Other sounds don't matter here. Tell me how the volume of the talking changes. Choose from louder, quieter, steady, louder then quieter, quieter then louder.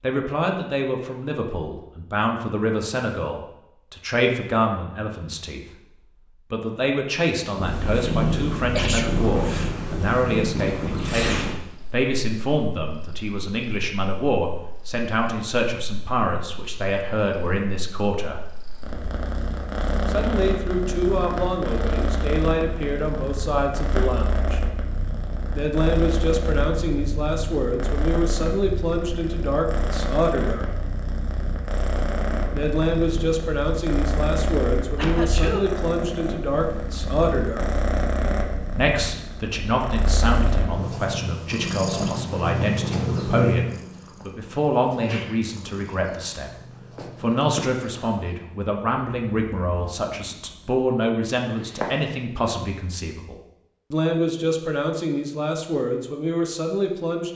steady.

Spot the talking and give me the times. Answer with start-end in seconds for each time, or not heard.
0.0-18.4, 20.1-24.6, 25.5-30.6, 32.5-37.6, 38.7-57.3.